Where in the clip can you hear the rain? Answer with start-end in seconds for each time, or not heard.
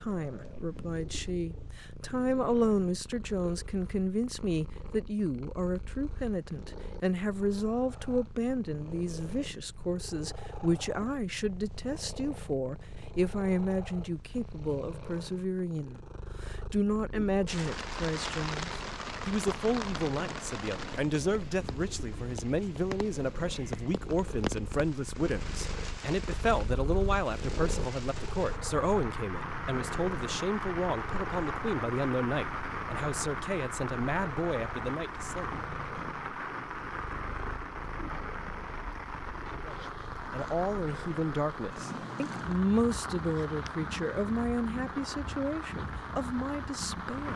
17.4-47.3.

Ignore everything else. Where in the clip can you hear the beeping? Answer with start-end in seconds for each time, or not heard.
not heard.